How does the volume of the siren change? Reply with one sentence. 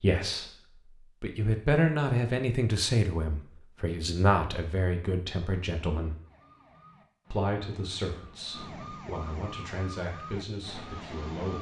The loudness of the siren goes up.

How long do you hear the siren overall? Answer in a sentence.
The siren can be heard for 5 seconds in total.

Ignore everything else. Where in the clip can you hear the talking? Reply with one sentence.
You can hear the talking from 0.0 to 0.5 s, from 1.2 to 6.2 s and from 7.3 to 11.5 s.